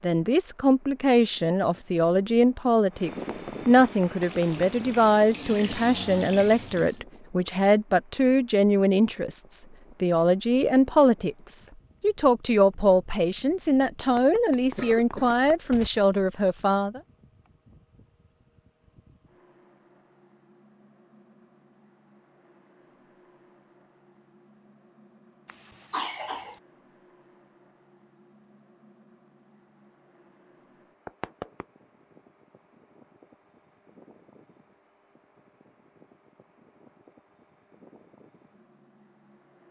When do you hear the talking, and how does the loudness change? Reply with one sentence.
The talking can be heard from 0.0 to 17.0 s, at a steady volume.